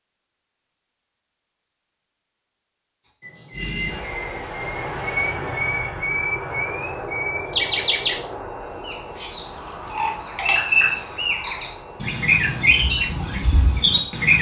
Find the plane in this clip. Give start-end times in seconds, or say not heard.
3.5-14.3.